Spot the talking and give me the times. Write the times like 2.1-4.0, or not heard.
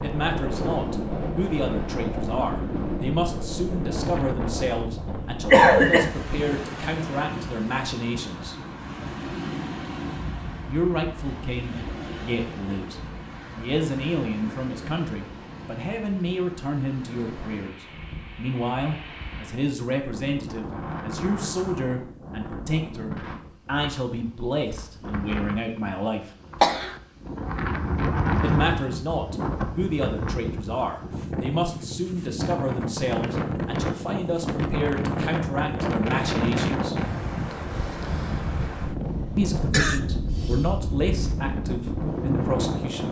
0.0-8.6, 10.7-26.3, 28.4-37.0, 39.4-43.0.